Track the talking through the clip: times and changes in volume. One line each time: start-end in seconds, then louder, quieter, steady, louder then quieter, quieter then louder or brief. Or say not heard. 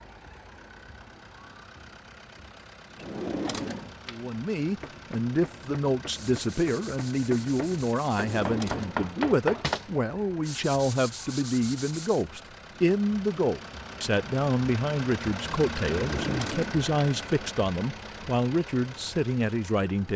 4.1-20.1 steady.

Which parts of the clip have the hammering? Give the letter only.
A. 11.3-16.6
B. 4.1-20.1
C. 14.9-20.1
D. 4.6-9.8
D.